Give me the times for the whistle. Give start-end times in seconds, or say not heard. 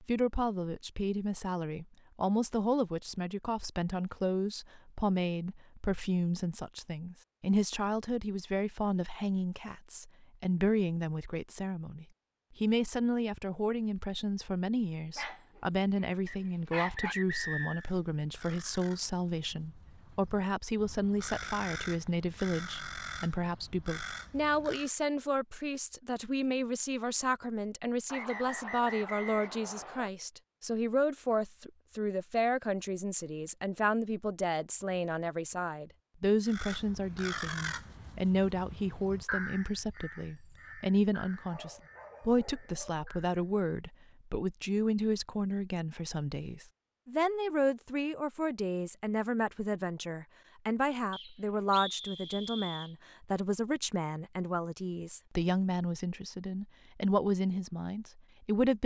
16.2-17.9, 28.1-30.1, 51.1-53.0.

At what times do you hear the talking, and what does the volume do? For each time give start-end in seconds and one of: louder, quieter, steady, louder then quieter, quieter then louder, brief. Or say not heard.
0.0-58.8 steady.